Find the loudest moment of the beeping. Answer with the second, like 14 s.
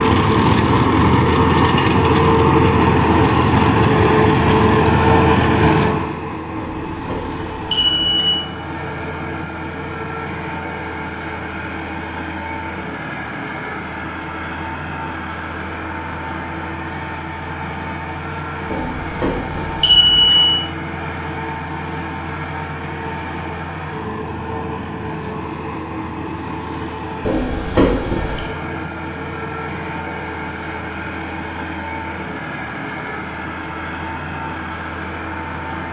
20 s.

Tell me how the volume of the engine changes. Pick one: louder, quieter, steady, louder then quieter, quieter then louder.
quieter.